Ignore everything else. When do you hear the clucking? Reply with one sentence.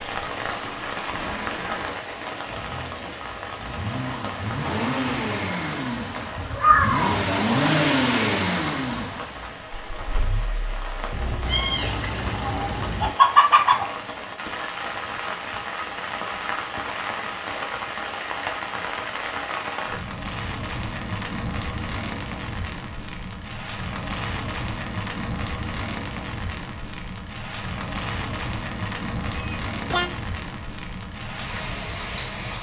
The clucking can be heard from 12.4 to 13.9 s.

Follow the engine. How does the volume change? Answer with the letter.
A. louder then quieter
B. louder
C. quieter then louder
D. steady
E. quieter
A.